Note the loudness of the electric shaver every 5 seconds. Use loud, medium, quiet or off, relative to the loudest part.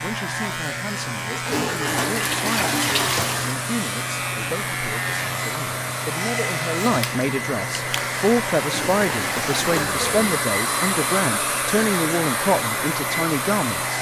loud, loud, medium.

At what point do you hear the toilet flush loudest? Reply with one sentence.
The volume of the toilet flush peaks at 3 seconds.